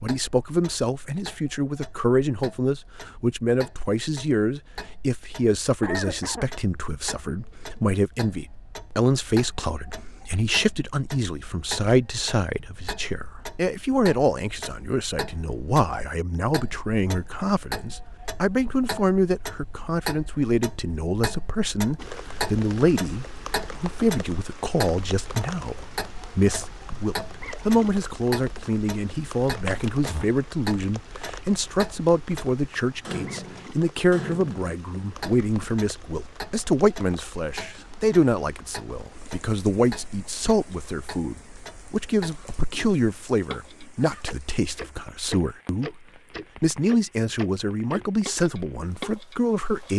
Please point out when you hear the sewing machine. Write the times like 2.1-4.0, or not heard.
not heard.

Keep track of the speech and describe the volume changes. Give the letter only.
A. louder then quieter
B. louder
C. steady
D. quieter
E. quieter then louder
C.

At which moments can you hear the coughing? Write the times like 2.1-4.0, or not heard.
5.8-6.5.